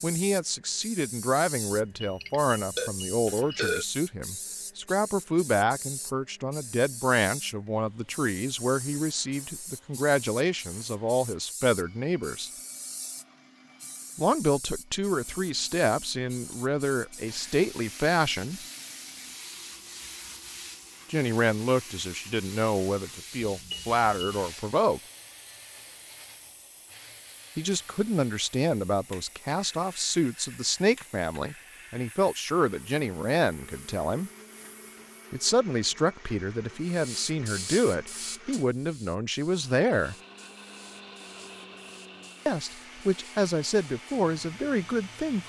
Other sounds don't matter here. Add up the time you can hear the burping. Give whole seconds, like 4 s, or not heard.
2 s.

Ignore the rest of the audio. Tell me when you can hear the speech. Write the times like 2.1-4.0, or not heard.
0.0-12.5, 14.2-18.6, 21.1-25.0, 27.6-34.3, 35.3-40.1, 42.5-45.4.